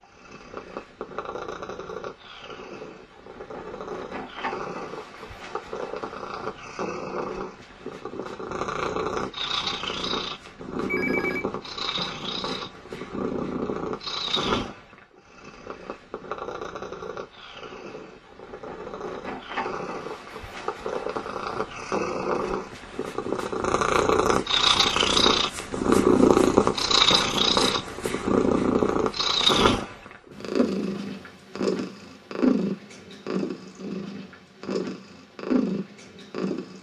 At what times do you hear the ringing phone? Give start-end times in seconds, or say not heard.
10.8-11.4.